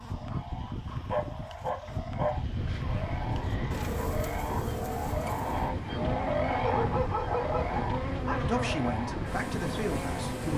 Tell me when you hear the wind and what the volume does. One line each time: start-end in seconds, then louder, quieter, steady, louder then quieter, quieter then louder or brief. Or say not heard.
2.2-10.5 steady.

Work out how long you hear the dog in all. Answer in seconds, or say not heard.
3 s.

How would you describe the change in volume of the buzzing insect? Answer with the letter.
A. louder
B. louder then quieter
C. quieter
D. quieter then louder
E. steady
E.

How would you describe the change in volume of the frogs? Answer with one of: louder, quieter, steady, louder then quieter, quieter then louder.
louder then quieter.